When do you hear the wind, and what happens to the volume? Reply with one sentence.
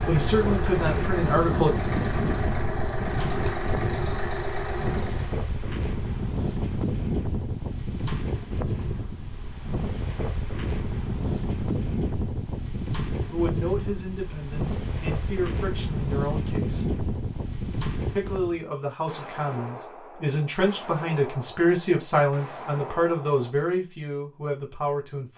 You can hear the wind from 0.0 to 18.6 s, at a steady volume.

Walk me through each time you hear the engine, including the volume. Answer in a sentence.
You can hear the engine from 0.0 to 5.4 s, at a steady volume.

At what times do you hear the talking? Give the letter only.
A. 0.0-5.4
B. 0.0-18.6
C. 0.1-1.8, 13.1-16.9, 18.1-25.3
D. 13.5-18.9
C.